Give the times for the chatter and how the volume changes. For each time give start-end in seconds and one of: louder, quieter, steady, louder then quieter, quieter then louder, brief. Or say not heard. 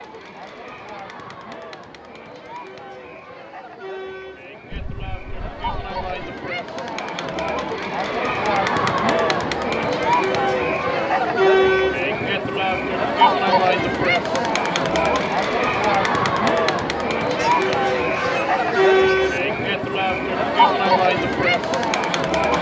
0.0-22.5 louder.